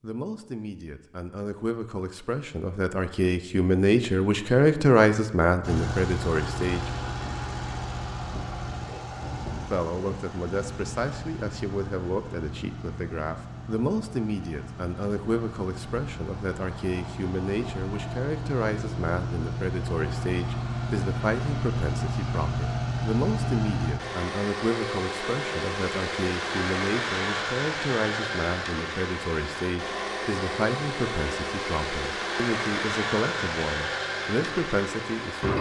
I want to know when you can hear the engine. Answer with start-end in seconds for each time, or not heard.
5.6-35.5.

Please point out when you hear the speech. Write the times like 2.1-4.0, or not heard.
0.0-6.9, 9.7-35.5.